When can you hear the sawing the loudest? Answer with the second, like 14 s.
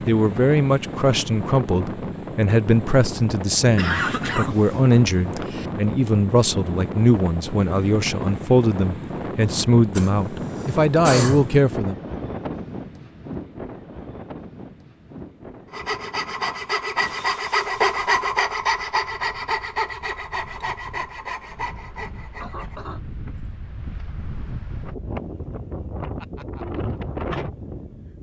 18 s.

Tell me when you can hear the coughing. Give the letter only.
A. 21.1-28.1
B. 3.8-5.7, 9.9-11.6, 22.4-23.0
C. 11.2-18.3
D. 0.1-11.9
B.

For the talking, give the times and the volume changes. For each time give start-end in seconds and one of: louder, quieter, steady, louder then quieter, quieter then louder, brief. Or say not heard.
0.1-11.9 steady.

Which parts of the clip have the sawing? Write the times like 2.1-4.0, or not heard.
15.7-22.8.